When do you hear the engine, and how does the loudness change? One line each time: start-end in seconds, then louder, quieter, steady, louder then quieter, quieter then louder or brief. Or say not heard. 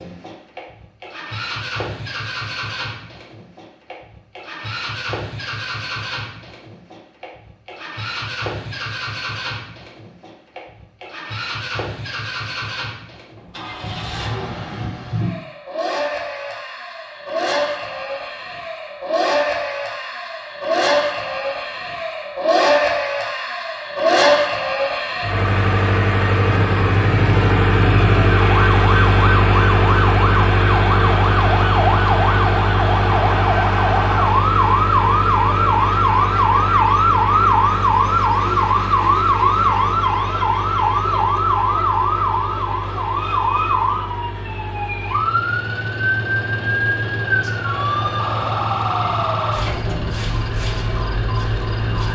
0.0-52.0 louder then quieter.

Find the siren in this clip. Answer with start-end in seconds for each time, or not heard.
26.4-52.0.